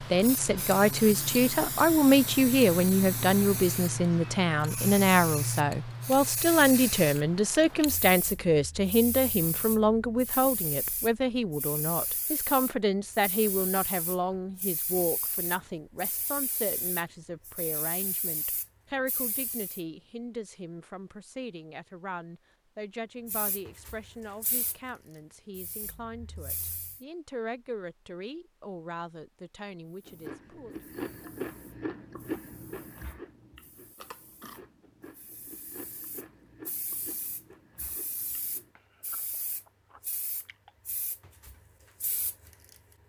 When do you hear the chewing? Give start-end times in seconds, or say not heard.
30.1-40.8.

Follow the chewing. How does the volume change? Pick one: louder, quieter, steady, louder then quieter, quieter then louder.
quieter.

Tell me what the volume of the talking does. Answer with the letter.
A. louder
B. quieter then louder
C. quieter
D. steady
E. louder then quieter
C.